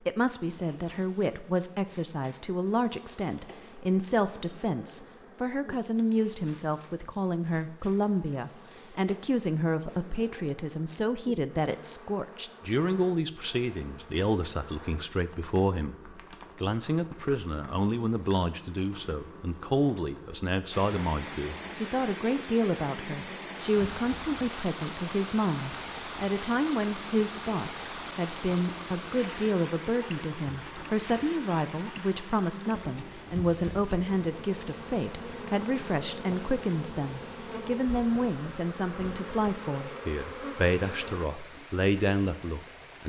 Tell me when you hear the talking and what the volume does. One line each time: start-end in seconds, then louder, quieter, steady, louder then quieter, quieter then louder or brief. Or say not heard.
0.0-43.0 steady.